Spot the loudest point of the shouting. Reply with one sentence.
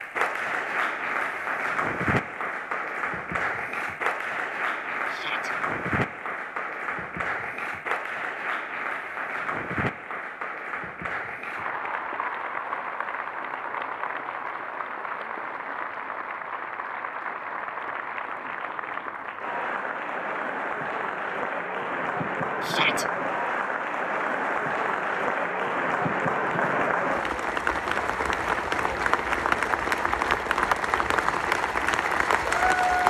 The volume of the shouting peaks at 23 seconds.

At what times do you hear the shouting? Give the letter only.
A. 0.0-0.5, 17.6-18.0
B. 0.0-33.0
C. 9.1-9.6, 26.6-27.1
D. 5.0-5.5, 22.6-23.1
D.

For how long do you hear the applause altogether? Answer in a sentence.
You can hear the applause for 33 seconds altogether.